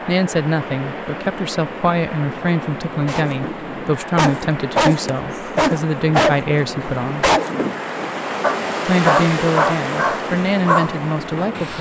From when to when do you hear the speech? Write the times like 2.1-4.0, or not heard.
0.1-7.2, 8.8-11.7.